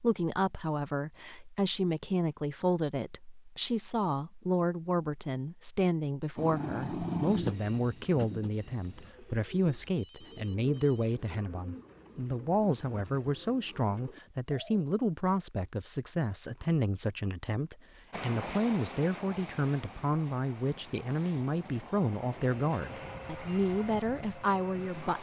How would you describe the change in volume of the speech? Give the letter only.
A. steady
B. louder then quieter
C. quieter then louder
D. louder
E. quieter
A.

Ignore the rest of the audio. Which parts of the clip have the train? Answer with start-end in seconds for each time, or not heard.
6.3-9.1, 18.1-25.1.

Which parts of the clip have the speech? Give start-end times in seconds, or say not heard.
0.0-25.1.